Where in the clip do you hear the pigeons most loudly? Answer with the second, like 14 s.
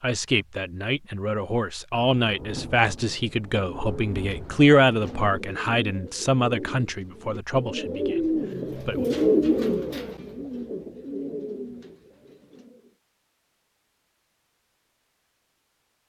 9 s.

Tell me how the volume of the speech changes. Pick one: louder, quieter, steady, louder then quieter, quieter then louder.
louder then quieter.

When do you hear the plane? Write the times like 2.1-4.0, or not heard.
not heard.